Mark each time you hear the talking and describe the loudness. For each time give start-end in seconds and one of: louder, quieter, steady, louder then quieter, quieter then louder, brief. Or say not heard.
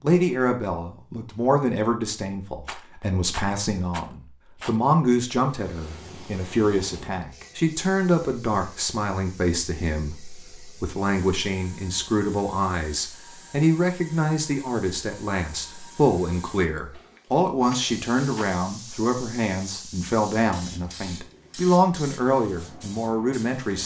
0.0-23.8 steady.